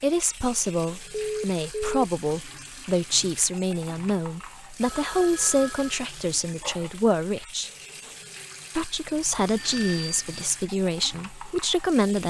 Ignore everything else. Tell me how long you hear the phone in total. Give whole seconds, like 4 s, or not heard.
3 s.